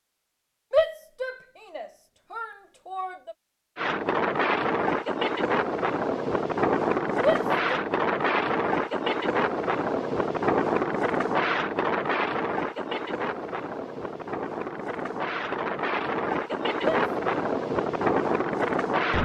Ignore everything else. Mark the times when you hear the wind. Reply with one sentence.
You can hear the wind from 3.8 to 19.1 s.